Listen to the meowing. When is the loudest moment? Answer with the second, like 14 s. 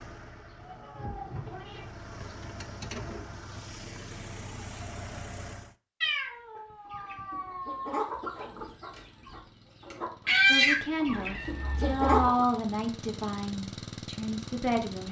6 s.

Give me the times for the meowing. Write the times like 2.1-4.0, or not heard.
0.6-1.9, 6.0-8.1, 11.1-12.2.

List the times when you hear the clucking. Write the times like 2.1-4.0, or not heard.
6.8-12.4.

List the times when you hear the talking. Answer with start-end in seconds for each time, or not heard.
10.4-15.0.